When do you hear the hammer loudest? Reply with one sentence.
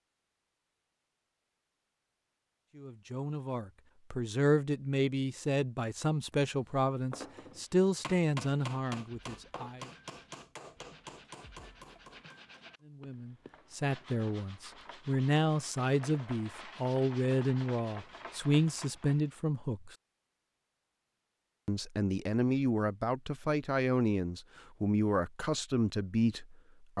The volume of the hammer peaks at 9 seconds.